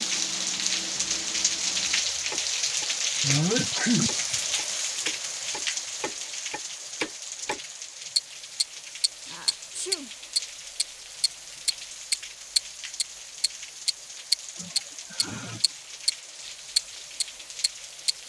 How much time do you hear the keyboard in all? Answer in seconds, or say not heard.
not heard.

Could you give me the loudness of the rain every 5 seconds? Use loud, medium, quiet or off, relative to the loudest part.
loud, medium, quiet, quiet.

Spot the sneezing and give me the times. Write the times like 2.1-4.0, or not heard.
3.2-4.3, 9.2-10.1, 14.6-15.7.